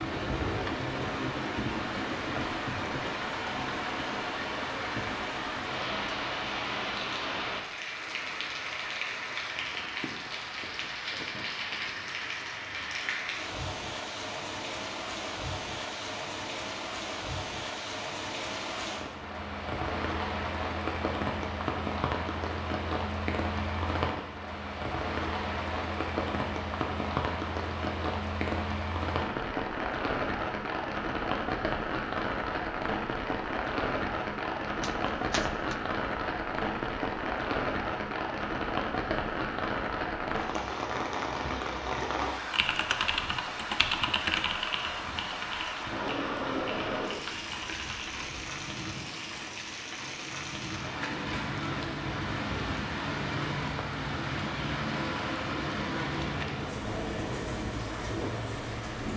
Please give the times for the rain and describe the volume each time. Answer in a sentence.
The rain can be heard from 0.0 to 59.1 s, at a steady volume.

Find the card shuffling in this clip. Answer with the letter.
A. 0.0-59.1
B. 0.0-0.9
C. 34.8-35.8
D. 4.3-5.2
C.